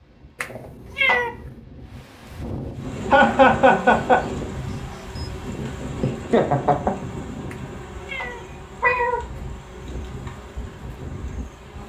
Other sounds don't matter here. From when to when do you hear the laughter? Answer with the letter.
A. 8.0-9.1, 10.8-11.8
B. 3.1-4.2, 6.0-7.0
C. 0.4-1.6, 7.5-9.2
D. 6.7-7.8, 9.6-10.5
B.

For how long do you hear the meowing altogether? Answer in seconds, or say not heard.
3 s.